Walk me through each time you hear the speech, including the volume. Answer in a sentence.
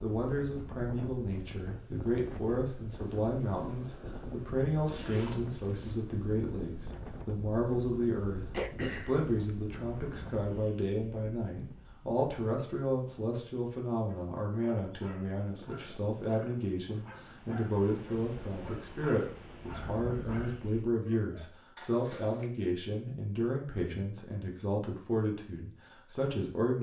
The speech can be heard from 0.0 to 26.7 s, at a steady volume.